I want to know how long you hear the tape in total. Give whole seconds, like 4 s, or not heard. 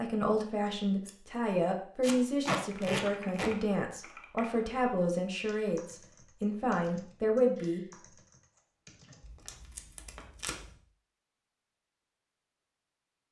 3 s.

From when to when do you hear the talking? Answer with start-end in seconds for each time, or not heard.
0.0-7.8.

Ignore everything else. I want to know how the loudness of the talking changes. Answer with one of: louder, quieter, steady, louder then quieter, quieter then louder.
steady.